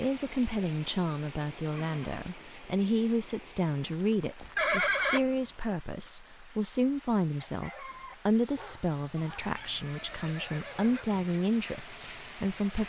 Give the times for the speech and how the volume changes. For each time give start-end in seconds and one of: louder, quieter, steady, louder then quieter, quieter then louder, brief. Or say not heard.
0.0-12.8 steady.